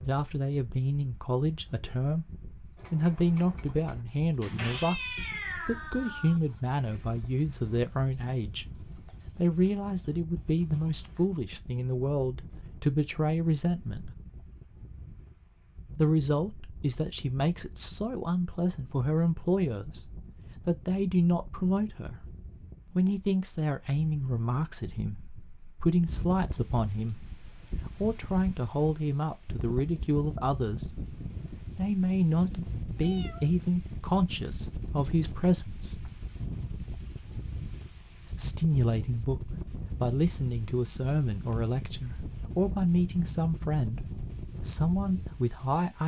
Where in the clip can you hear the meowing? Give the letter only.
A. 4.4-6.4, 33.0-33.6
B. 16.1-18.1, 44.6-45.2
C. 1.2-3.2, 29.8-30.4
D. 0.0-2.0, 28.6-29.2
A.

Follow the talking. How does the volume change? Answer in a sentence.
The volume of the talking stays about the same.